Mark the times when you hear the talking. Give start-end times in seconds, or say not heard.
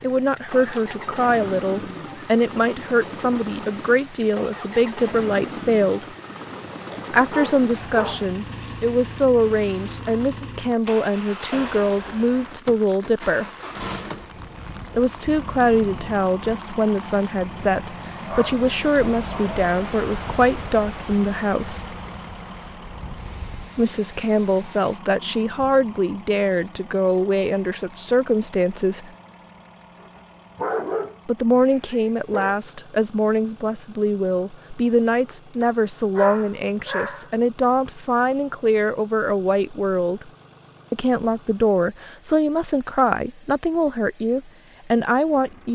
0.0-6.0, 7.1-13.4, 14.9-21.9, 23.8-29.1, 31.2-40.3, 40.9-45.7.